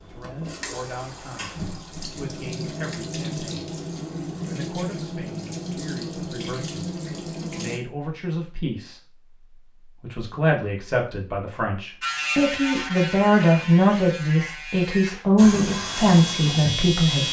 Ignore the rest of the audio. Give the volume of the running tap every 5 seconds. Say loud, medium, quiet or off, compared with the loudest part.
loud, loud, off, loud.